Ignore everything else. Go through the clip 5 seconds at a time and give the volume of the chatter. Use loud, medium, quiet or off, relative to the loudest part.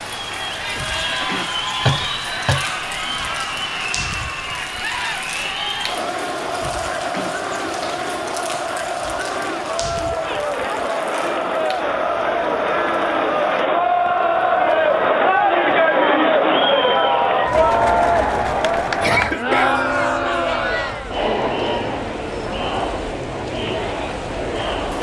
medium, medium, loud, loud, medium.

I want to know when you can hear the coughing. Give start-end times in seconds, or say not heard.
1.9-2.7, 19.0-19.8.